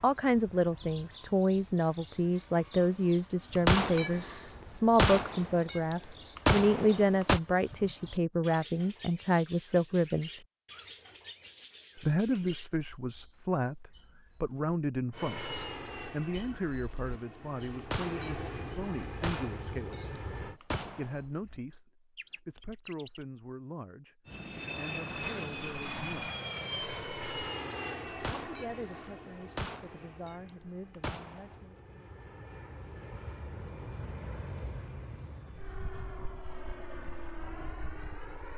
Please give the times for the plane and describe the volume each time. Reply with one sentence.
You can hear the plane from 15.1 to 20.6 s, getting quieter then louder; and from 24.2 to 38.5 s, getting quieter then louder.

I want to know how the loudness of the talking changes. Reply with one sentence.
The volume of the talking goes down.